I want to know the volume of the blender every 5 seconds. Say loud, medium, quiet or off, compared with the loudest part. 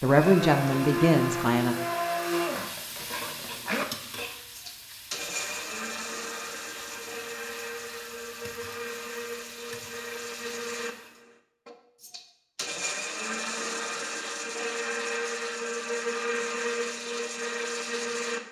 loud, medium, loud, loud.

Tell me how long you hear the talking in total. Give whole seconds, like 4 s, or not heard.
2 s.